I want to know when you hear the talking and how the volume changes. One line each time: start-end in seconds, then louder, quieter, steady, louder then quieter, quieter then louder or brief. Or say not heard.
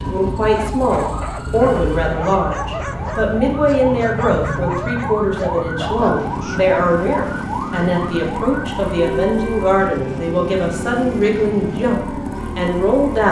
0.0-13.2 steady.